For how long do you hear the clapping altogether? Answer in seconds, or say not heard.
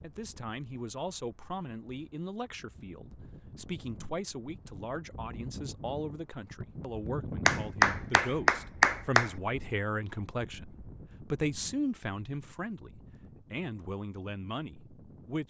2 s.